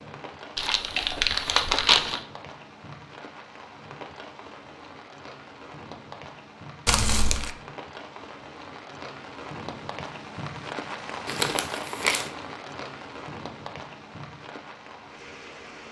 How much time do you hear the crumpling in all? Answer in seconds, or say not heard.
3 s.